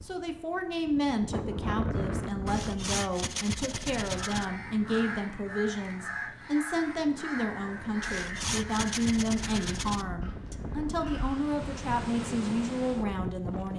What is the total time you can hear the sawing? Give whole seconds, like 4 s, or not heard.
4 s.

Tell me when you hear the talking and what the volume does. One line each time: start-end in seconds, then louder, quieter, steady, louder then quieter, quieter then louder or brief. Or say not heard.
0.0-13.7 steady.